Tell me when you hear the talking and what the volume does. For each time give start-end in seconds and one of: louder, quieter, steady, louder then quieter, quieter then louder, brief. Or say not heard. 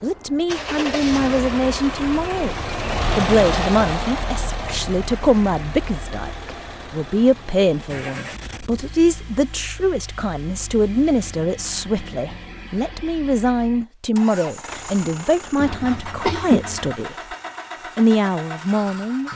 0.0-17.1 steady
17.9-19.3 brief.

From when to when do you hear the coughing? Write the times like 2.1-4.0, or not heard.
15.6-16.9.